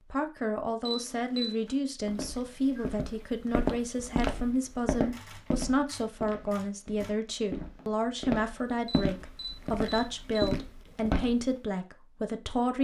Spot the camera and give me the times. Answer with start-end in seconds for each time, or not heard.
0.8-1.7, 5.1-7.1, 8.8-10.5.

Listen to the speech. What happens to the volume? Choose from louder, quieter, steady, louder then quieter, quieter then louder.
steady.